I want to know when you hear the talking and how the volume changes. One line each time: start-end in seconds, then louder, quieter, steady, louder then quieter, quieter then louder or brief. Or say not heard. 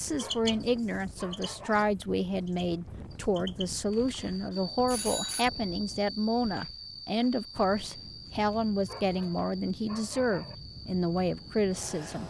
0.0-12.2 steady.